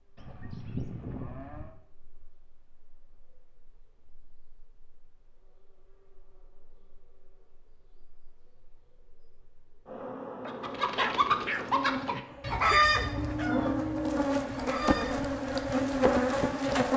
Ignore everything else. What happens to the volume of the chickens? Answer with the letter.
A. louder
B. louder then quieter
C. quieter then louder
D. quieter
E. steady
C.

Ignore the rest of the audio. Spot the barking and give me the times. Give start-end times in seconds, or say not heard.
10.4-13.3.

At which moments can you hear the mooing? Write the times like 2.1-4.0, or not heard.
0.1-1.8, 12.9-14.6.